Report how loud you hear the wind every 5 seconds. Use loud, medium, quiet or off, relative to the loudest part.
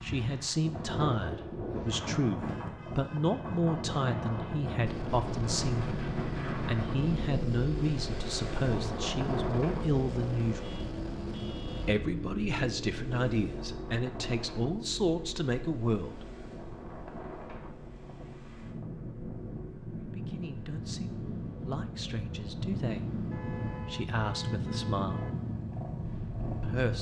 loud, loud, medium, medium, loud, loud.